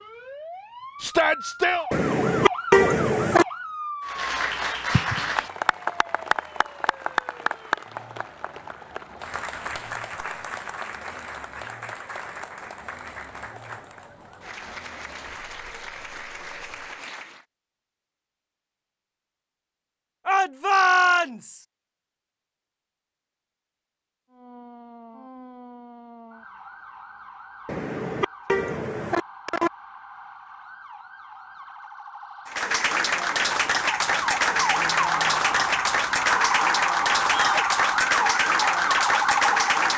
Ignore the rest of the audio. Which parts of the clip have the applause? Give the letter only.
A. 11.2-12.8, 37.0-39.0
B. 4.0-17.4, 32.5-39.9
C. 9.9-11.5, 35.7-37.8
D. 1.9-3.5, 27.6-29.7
B.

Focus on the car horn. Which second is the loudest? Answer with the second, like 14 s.
3 s.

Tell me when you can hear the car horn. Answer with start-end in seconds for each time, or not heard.
1.9-3.5, 27.6-29.7.